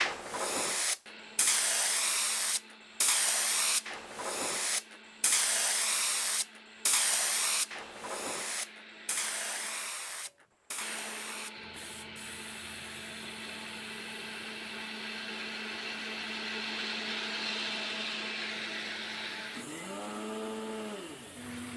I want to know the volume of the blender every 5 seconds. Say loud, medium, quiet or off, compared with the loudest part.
quiet, quiet, medium, loud, loud.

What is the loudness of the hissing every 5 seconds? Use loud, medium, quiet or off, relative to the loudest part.
loud, loud, quiet, quiet, quiet.